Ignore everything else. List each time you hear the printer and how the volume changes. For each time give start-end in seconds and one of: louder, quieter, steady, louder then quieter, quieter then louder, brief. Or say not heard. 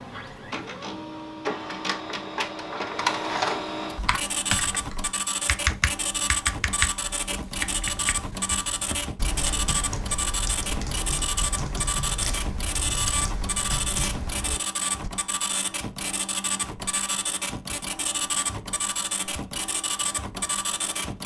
0.0-21.2 steady.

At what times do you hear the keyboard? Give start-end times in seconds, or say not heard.
4.0-15.1.